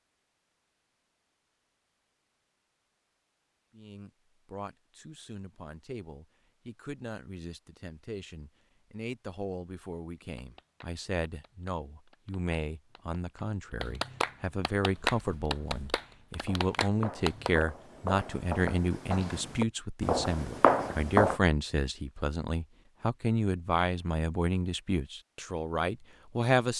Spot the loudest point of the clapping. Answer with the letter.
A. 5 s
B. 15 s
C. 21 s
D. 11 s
B.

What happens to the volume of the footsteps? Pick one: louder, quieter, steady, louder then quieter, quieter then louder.
louder.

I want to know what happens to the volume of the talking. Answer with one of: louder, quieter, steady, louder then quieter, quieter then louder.
louder.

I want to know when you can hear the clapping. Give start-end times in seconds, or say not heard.
10.2-17.6.